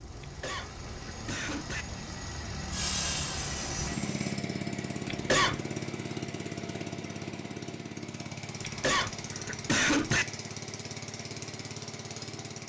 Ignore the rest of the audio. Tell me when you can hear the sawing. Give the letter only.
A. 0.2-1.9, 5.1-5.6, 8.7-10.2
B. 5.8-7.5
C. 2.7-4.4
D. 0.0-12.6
C.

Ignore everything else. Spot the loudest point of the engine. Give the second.
4 s.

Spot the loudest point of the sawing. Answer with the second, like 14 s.
3 s.